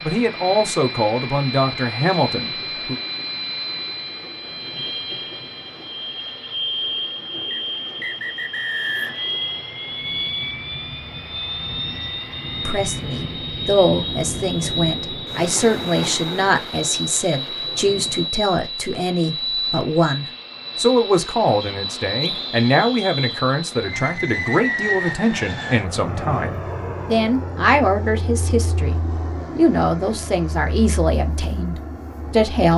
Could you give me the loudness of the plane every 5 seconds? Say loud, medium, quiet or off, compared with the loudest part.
loud, loud, loud, loud, loud, loud, medium.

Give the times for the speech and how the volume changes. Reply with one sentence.
The speech can be heard briefly from 0.0 to 3.0 s; and from 12.7 to 32.7 s, at a steady volume.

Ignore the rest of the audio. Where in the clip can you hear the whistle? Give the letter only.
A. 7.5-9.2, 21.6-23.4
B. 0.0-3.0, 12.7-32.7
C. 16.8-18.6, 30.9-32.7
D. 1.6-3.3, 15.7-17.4
A.